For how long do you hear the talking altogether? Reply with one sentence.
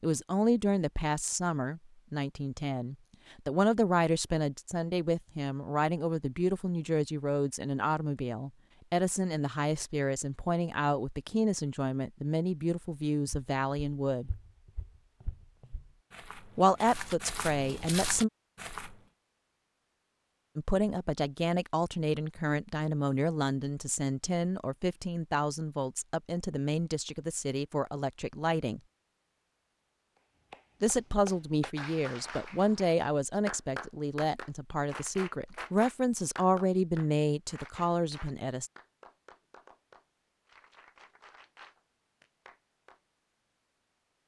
The talking can be heard for 32 seconds in total.